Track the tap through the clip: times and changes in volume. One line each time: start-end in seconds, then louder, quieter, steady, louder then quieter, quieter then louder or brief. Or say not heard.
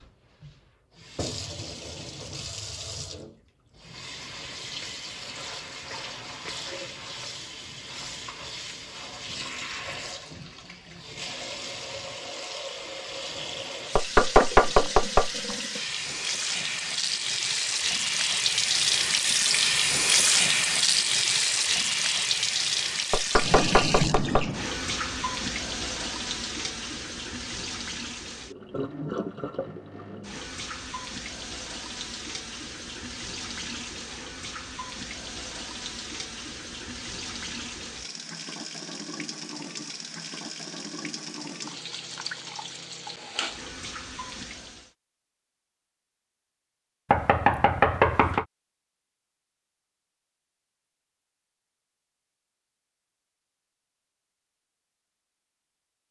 0.0-44.9 louder then quieter.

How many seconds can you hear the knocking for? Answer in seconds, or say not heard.
4 s.